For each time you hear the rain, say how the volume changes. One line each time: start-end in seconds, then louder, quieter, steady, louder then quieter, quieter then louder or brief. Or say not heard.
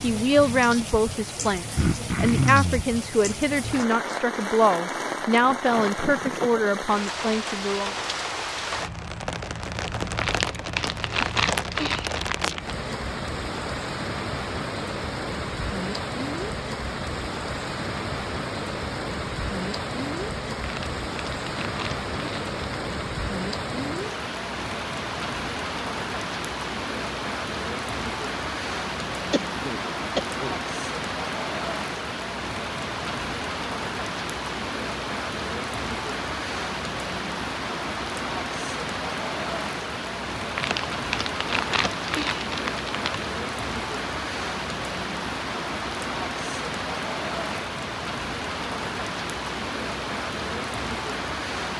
0.0-51.7 steady.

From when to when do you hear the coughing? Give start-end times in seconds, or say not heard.
1.8-2.9, 29.3-30.6.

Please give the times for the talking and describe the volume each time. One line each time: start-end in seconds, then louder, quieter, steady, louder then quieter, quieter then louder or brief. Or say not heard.
0.0-7.9 steady.